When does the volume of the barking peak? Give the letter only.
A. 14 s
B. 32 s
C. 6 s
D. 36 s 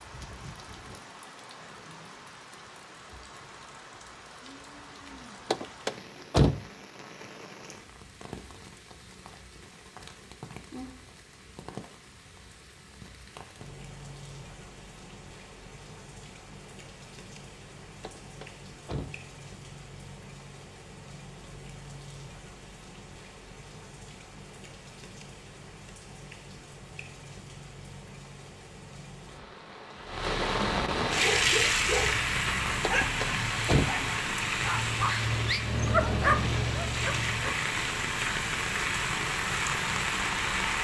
D.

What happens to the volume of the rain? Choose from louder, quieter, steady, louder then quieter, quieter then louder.
louder.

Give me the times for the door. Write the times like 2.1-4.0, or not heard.
5.5-6.6, 18.0-19.1, 32.8-34.0.